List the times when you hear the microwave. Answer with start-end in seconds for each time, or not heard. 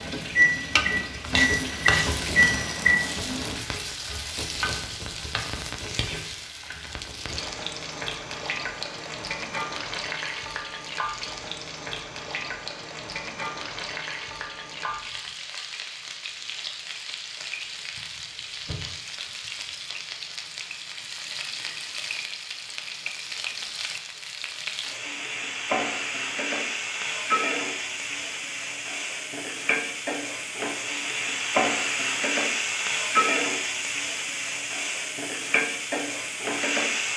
0.0-3.6.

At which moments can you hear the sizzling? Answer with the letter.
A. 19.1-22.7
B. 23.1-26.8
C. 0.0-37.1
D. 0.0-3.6
C.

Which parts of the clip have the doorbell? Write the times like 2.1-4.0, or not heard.
not heard.